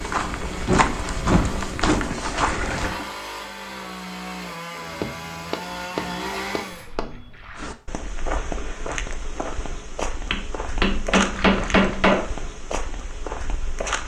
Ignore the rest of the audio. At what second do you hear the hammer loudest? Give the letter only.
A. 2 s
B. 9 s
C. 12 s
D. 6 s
C.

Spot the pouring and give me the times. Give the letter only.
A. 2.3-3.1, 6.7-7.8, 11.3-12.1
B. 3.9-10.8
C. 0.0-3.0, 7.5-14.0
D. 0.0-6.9
A.